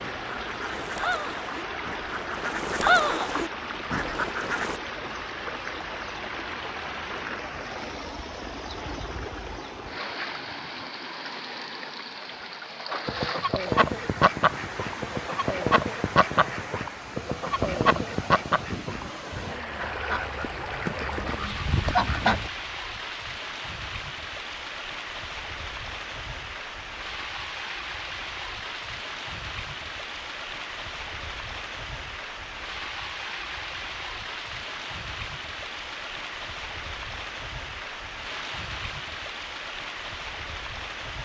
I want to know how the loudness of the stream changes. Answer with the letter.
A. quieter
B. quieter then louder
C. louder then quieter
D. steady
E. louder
D.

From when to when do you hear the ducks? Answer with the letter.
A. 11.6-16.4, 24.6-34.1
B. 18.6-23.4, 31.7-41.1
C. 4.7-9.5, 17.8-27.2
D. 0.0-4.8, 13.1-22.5
D.